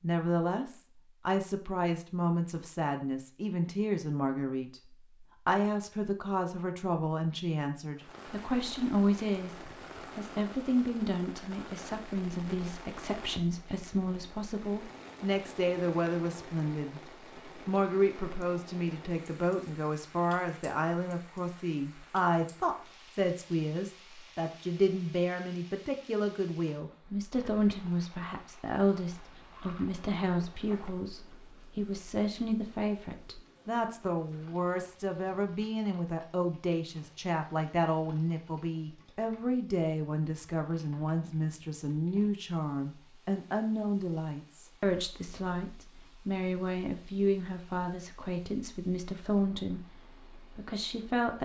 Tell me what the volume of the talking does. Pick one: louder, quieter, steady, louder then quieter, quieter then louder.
steady.